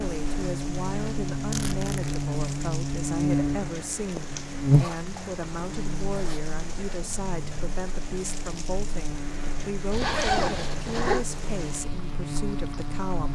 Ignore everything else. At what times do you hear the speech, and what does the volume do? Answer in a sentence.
The speech can be heard from 0.0 to 13.2 s, at a steady volume.